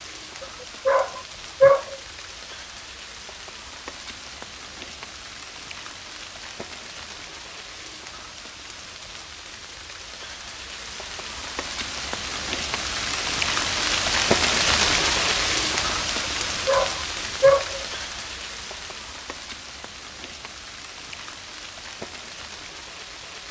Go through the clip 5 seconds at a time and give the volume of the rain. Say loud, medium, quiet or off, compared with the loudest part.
quiet, quiet, loud, loud, quiet.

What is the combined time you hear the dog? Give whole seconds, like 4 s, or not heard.
3 s.